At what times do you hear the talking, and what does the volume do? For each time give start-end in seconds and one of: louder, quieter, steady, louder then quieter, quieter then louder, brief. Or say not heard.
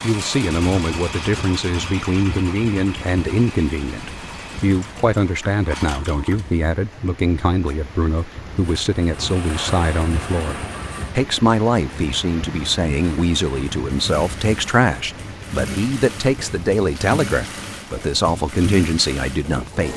0.0-19.9 steady.